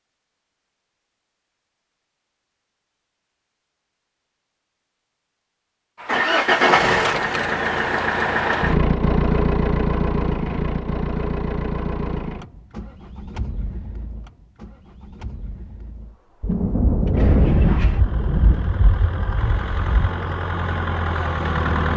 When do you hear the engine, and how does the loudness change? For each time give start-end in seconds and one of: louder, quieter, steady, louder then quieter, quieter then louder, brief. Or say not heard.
6.0-21.9 quieter then louder.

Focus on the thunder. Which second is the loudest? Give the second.
18 s.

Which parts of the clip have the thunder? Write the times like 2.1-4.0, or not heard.
16.4-20.1.